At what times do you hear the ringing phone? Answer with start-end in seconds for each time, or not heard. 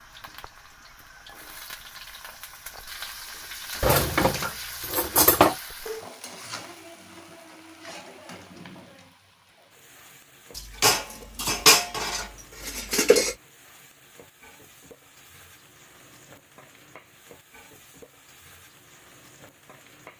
not heard.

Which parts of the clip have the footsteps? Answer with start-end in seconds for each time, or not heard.
not heard.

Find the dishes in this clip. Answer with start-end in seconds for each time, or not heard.
3.8-5.5, 10.6-13.3.